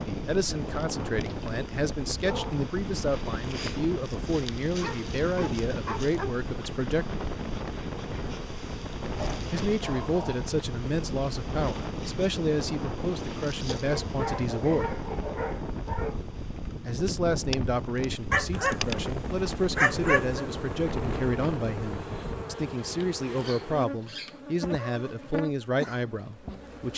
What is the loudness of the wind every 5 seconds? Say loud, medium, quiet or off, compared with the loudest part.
loud, loud, loud, loud, loud, off.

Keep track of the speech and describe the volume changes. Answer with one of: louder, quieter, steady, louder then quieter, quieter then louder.
steady.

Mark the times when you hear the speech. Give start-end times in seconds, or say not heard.
0.1-7.2, 9.5-15.0, 16.9-26.9.